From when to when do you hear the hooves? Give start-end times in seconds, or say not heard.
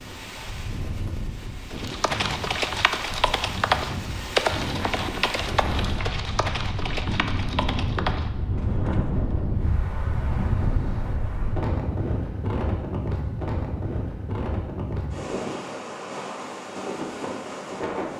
1.7-9.2.